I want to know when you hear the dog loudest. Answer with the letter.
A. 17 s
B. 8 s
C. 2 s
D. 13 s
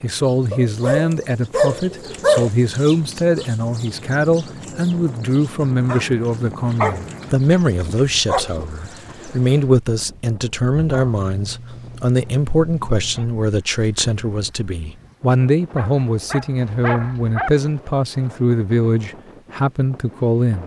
C.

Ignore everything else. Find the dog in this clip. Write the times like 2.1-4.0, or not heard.
0.5-2.5, 5.8-8.6, 10.8-13.2, 15.8-17.5.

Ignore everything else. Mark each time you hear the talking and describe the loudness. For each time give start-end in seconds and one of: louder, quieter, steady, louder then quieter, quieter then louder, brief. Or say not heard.
0.0-20.6 steady.